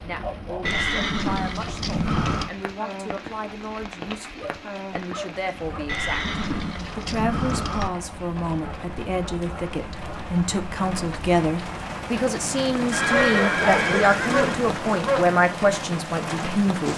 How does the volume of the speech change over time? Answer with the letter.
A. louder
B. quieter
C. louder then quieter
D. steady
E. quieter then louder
A.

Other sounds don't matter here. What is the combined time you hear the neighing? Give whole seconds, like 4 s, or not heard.
6 s.